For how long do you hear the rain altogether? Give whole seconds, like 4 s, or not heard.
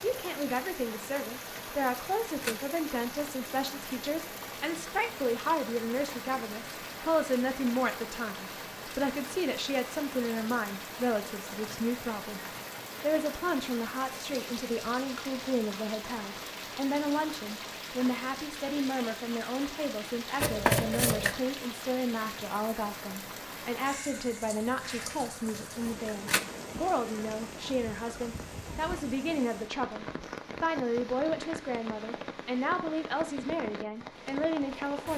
35 s.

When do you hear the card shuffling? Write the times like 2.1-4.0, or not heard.
1.6-2.6, 20.4-21.4, 25.2-26.4.